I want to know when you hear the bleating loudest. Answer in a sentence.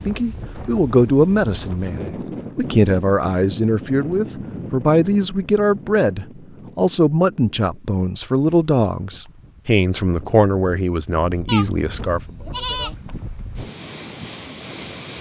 The volume of the bleating peaks at 13 seconds.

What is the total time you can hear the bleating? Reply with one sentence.
You can hear the bleating for 2 seconds altogether.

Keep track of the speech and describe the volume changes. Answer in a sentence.
The volume of the speech stays about the same.